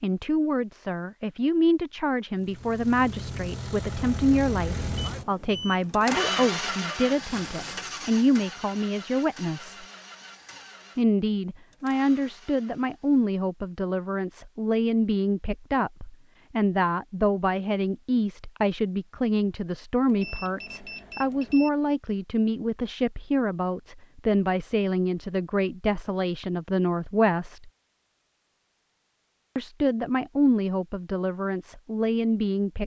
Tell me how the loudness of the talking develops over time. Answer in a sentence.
The loudness of the talking stays about the same.